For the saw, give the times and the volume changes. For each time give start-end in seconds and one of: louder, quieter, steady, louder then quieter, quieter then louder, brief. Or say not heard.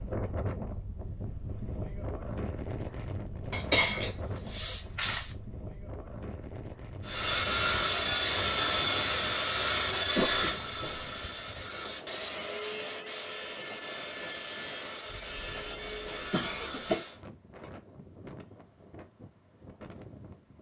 7.0-17.2 quieter.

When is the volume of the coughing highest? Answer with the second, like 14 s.
4 s.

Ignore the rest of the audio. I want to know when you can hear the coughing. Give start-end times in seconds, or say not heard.
3.5-5.3, 10.2-11.1, 15.1-17.0.